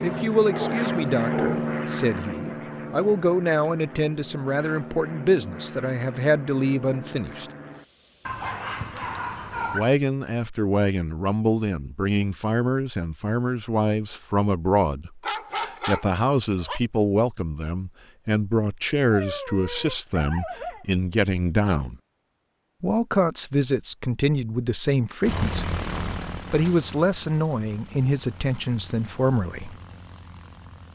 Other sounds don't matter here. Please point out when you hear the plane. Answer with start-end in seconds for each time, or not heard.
0.0-8.5, 25.2-30.9.